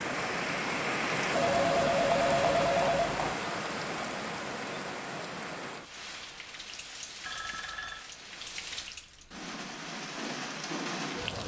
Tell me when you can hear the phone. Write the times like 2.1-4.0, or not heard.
1.4-3.4, 7.2-8.1.